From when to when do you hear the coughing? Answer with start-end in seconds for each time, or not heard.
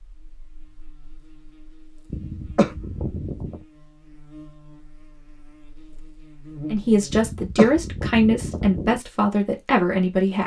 2.1-3.6, 7.1-9.0.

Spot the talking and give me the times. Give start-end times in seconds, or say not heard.
6.7-10.4.